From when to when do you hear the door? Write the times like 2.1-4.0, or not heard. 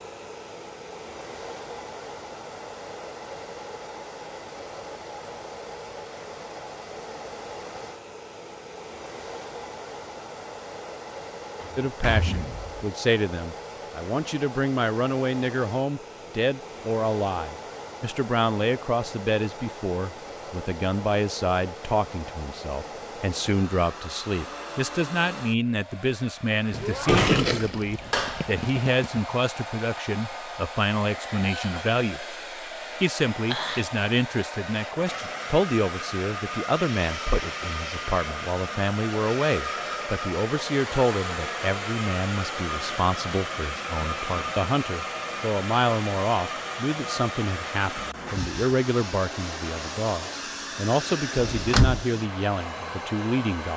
11.6-12.8, 26.7-28.5, 51.4-52.0.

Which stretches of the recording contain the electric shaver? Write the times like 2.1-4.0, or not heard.
not heard.